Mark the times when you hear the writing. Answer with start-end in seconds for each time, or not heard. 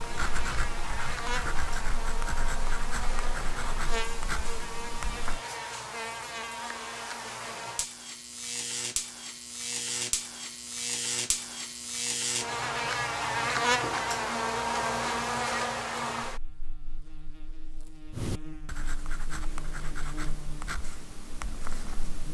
0.0-5.4, 18.1-22.3.